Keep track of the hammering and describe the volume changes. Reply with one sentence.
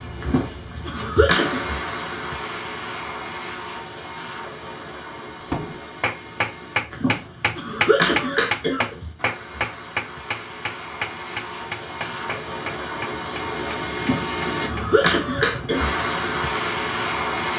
The loudness of the hammering goes down.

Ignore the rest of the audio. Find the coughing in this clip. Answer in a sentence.
The coughing can be heard from 0.2 to 1.6 s, from 6.9 to 9.0 s and from 13.9 to 15.9 s.